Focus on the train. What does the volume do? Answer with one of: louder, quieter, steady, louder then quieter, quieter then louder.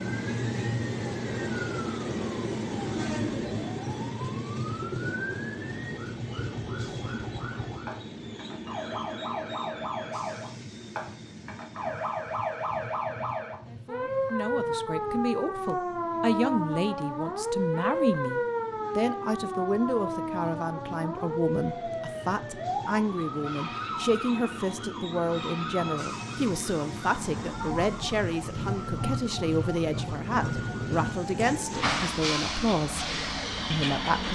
quieter then louder.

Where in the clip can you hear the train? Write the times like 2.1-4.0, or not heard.
0.0-34.3.